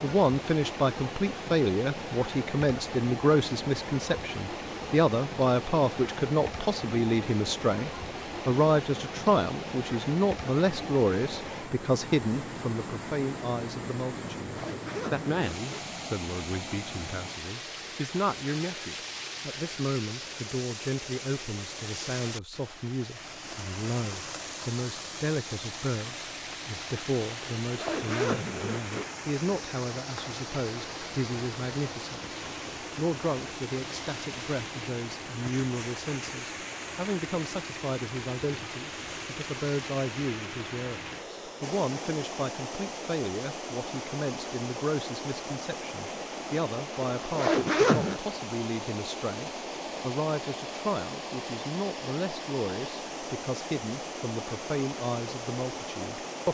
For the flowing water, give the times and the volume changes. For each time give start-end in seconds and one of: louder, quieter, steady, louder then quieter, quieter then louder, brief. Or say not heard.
0.0-56.4 steady.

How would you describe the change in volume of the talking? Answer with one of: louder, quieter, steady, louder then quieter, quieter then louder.
quieter.